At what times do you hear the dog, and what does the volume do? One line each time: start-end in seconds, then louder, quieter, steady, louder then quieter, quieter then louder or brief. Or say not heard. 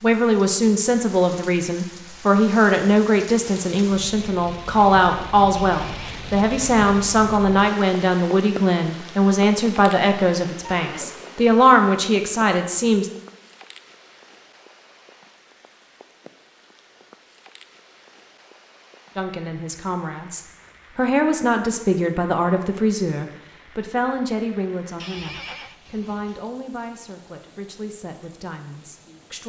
not heard.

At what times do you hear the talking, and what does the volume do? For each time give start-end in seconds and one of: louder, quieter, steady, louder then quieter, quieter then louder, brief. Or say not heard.
0.0-13.1 steady
19.1-29.4 quieter.